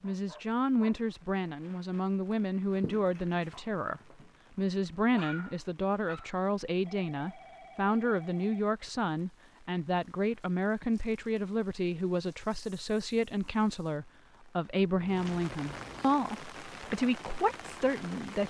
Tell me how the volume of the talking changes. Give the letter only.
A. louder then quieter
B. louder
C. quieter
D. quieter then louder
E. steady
E.